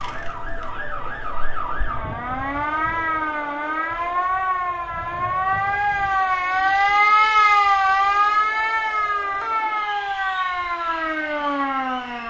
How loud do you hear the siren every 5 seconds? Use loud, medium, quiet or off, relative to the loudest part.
medium, loud, medium.